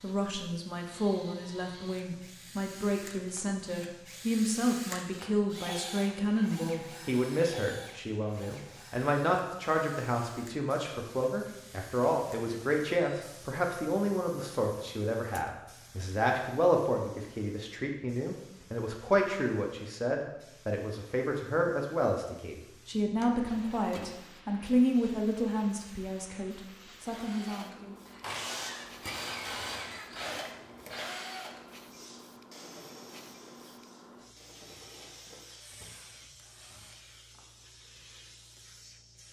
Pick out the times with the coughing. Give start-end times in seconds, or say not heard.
not heard.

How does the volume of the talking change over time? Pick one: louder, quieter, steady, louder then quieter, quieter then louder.
steady.